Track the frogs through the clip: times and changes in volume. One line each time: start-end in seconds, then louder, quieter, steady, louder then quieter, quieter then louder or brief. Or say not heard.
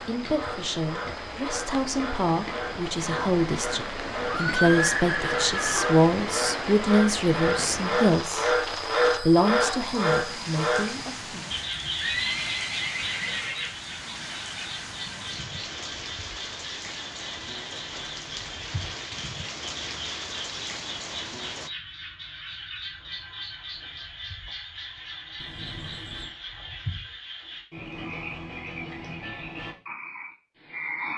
0.0-31.1 louder then quieter.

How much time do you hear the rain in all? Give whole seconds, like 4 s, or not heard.
22 s.